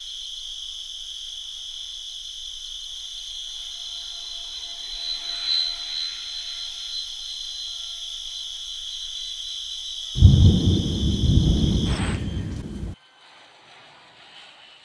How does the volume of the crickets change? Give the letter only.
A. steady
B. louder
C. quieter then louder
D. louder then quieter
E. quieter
A.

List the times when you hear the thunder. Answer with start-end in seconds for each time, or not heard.
10.2-12.9.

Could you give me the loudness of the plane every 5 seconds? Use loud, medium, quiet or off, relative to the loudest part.
quiet, loud, quiet.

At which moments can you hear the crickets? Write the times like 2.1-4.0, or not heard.
0.0-12.2.